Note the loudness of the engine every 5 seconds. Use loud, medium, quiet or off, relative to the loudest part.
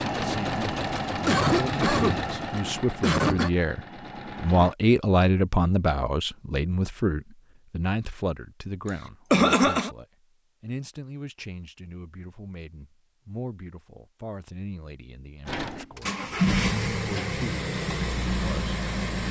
loud, off, off, loud.